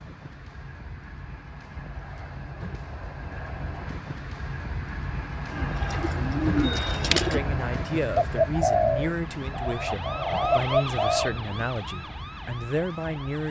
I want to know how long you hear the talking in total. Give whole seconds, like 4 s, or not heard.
6 s.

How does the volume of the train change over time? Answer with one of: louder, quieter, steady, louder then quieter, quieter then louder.
louder then quieter.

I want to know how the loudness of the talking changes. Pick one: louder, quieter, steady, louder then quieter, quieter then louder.
steady.